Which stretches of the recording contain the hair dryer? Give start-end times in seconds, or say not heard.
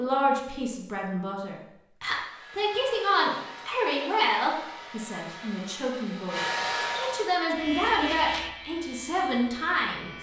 2.1-7.4.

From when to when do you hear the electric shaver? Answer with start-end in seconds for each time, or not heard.
7.5-10.1.